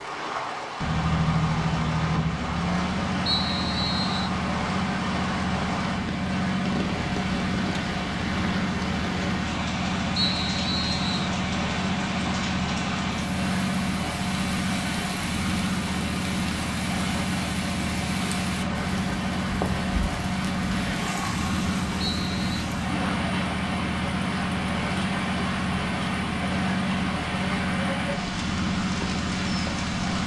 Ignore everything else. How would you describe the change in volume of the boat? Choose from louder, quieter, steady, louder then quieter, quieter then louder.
steady.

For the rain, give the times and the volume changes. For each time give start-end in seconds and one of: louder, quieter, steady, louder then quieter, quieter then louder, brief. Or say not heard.
0.0-30.2 steady.